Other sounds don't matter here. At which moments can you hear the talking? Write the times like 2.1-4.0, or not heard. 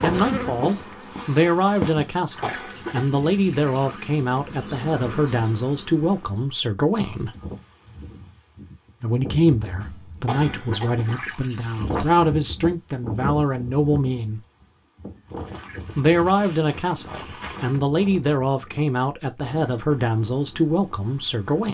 0.0-7.3, 9.0-14.4, 15.9-21.6.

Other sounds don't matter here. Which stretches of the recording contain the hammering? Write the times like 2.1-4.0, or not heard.
not heard.